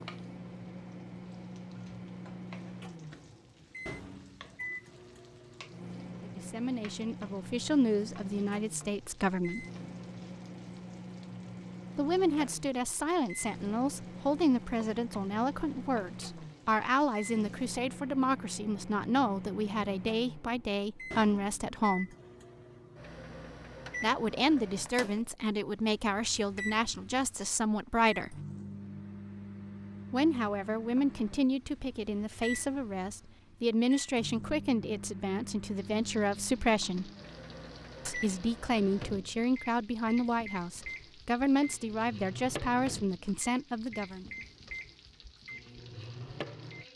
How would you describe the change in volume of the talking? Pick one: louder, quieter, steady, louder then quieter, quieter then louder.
steady.